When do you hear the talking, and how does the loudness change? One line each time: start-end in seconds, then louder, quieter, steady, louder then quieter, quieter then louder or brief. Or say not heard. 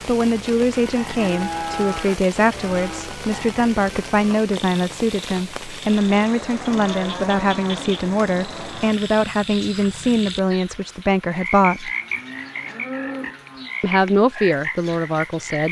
0.1-11.9 steady
13.8-15.6 brief.